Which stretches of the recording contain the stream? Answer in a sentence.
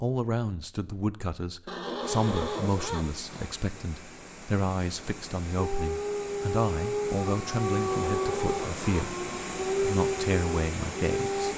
The stream can be heard from 1.9 to 11.5 s.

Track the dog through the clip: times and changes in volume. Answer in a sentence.
The dog can be heard from 5.5 to 11.5 s, at a steady volume.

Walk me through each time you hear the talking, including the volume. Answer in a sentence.
The talking can be heard from 0.0 to 11.5 s, at a steady volume.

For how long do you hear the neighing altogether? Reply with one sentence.
You can hear the neighing for 3 seconds altogether.